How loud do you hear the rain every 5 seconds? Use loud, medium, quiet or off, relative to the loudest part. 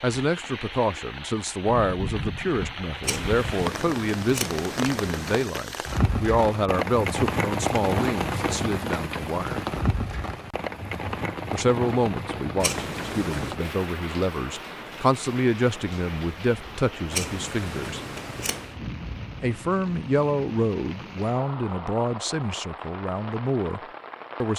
medium, loud, medium, medium, medium.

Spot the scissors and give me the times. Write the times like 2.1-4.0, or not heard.
3.0-5.5, 12.6-13.6, 17.1-18.8.